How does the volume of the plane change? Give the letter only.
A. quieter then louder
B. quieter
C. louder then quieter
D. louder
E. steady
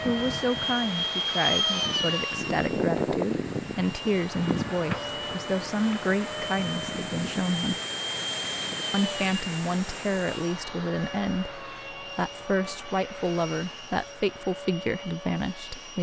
B.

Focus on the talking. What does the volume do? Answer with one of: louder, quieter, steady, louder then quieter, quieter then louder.
steady.